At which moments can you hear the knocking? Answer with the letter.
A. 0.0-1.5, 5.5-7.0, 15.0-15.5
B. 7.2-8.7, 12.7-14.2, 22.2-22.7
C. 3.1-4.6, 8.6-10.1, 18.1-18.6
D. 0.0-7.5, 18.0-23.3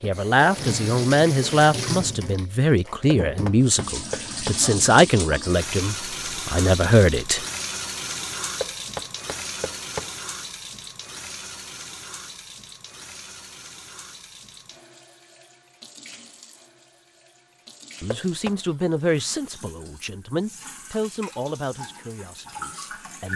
C.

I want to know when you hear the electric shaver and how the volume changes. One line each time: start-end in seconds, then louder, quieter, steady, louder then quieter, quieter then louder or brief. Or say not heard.
not heard.